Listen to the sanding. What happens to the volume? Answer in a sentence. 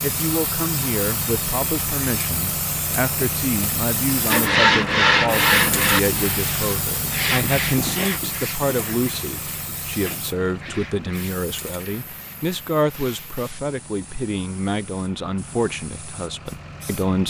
The volume of the sanding goes down.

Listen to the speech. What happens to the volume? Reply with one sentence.
The volume of the speech stays about the same.